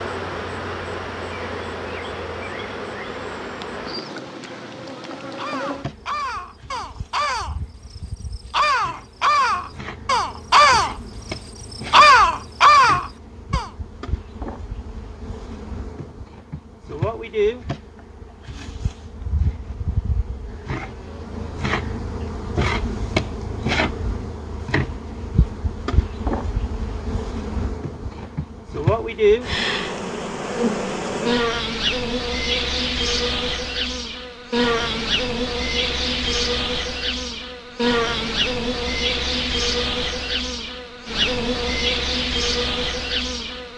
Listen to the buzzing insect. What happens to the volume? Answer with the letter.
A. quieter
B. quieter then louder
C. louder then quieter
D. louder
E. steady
D.